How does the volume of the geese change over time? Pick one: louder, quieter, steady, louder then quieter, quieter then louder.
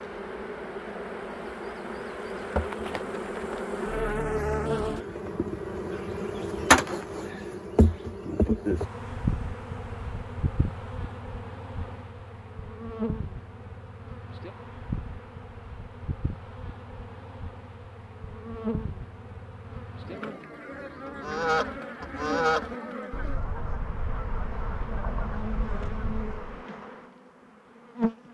quieter.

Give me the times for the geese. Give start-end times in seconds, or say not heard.
21.1-26.6.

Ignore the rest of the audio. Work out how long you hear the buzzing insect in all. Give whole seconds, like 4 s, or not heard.
28 s.